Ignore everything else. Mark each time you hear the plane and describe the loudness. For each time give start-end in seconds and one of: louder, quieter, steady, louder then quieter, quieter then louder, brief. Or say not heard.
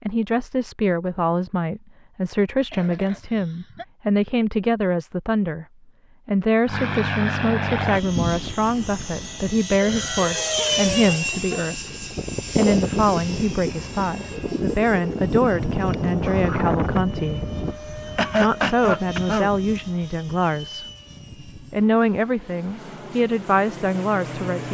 6.7-24.6 quieter.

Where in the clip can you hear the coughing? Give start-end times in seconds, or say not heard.
2.7-3.9, 9.8-11.8, 18.1-19.5.